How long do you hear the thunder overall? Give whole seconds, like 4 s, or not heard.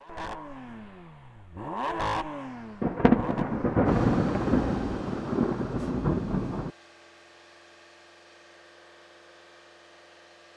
4 s.